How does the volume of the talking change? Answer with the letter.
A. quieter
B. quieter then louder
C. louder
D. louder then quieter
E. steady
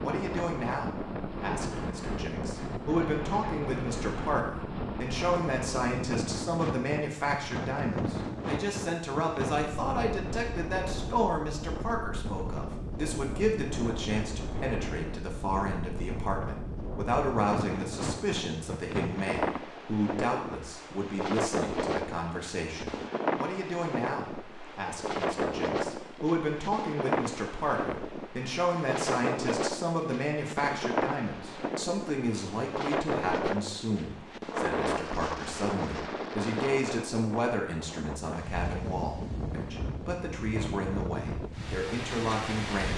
E.